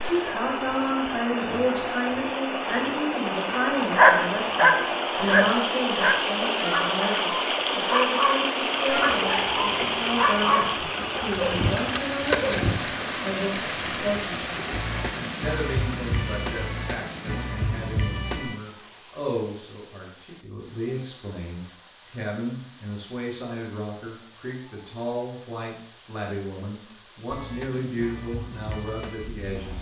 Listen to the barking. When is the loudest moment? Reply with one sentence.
The loudest moment of the barking is at 4 seconds.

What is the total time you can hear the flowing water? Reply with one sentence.
The flowing water can be heard for 30 seconds in total.